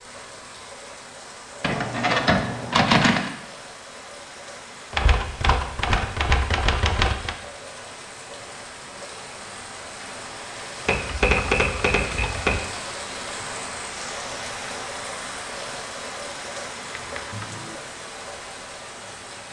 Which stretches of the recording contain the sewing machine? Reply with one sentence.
You can't hear the sewing machine here.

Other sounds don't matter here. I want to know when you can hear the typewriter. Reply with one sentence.
The typewriter can be heard from 1.6 to 3.3 s, from 4.9 to 7.3 s, from 10.8 to 12.6 s and from 16.9 to 17.8 s.